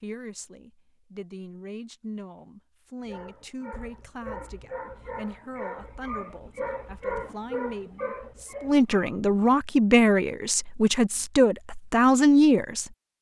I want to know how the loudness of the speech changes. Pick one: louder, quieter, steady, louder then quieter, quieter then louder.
louder.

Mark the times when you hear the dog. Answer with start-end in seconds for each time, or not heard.
3.0-9.6.